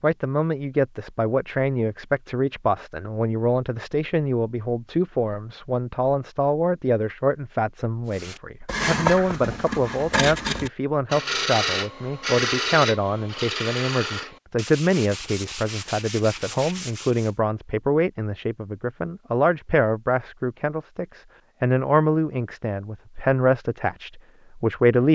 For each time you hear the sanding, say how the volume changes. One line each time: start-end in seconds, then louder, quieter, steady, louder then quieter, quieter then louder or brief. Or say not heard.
8.1-17.4 quieter.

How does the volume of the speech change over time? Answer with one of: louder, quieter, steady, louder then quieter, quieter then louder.
steady.